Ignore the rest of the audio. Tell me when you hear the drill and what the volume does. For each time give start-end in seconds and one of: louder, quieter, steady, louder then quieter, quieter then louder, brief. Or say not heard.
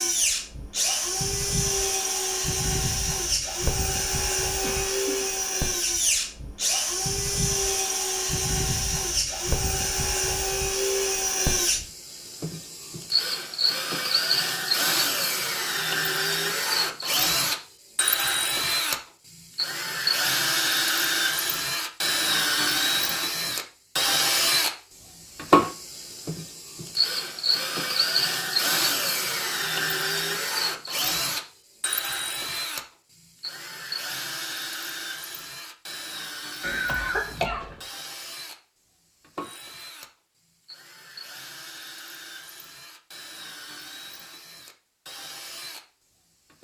0.0-46.5 quieter.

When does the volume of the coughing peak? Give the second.
37 s.